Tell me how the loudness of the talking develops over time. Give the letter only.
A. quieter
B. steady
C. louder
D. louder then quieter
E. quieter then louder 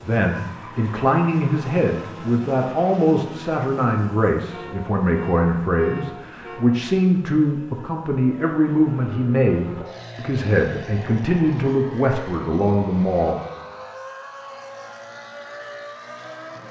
B.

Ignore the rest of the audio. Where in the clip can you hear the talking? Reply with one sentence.
You can hear the talking from 0.0 to 13.4 s.